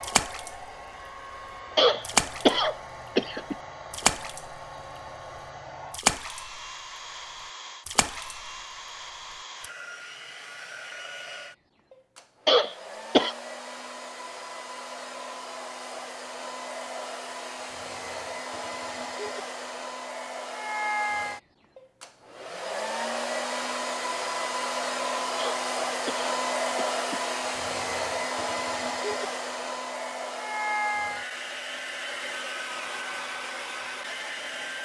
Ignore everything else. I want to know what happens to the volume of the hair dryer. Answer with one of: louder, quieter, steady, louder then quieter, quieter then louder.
louder.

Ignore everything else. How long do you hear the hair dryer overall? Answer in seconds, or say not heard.
35 s.